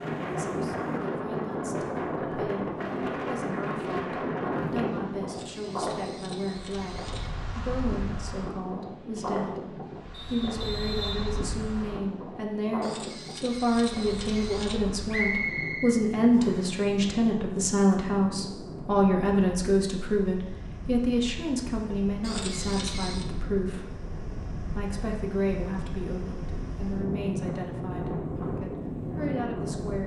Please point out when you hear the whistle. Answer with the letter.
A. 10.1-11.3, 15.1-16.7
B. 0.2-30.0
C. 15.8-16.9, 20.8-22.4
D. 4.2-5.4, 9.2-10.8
A.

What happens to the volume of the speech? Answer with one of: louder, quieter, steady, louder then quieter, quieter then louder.
louder then quieter.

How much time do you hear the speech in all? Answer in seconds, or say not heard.
30 s.